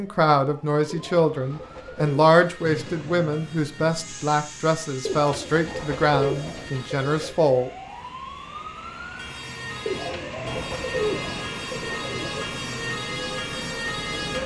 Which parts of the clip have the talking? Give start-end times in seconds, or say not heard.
0.0-7.7.